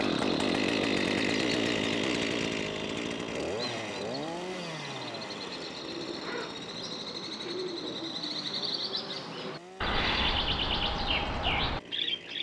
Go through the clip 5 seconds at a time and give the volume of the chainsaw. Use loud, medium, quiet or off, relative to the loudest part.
loud, quiet, quiet.